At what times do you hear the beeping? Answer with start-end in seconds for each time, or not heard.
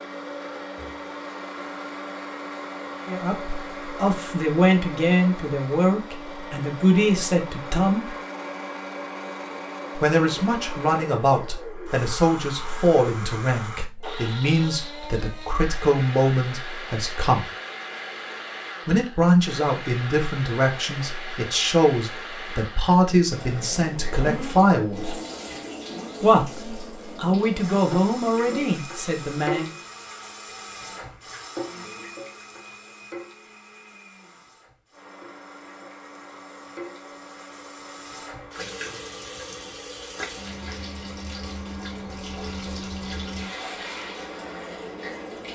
not heard.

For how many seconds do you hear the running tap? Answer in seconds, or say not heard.
22 s.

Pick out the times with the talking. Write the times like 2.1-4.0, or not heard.
3.0-8.1, 9.9-17.5, 18.9-25.1, 26.2-29.7.